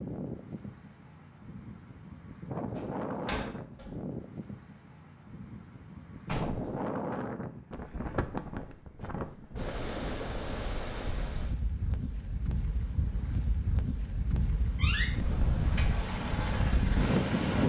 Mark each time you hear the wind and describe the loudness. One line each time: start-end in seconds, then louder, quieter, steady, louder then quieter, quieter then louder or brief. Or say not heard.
0.0-17.6 louder.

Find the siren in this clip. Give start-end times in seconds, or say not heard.
not heard.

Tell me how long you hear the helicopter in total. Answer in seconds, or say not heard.
2 s.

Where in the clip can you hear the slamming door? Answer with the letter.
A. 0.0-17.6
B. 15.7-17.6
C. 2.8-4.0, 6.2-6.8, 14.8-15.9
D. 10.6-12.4
C.